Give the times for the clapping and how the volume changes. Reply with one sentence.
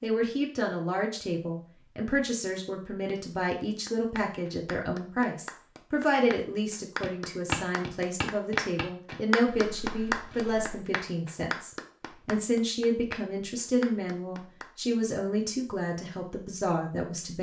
The clapping can be heard from 3.9 to 14.9 s, getting louder then quieter.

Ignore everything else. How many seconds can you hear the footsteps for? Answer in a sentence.
The footsteps can be heard for 4 seconds in total.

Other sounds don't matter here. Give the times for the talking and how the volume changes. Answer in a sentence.
The talking can be heard from 0.0 to 17.3 s, at a steady volume.